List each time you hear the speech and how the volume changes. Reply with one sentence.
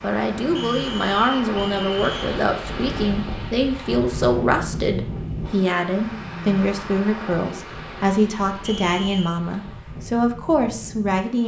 The speech can be heard from 0.0 to 11.4 s, at a steady volume.